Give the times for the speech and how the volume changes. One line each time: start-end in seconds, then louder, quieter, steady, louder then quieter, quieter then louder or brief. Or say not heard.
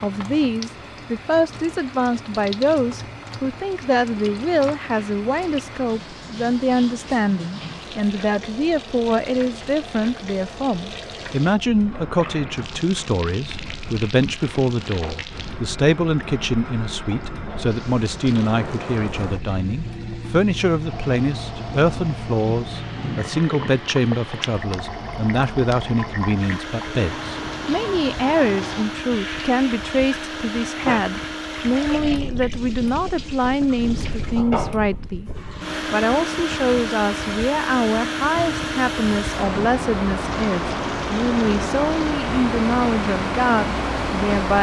0.0-35.3 steady
35.9-44.5 steady.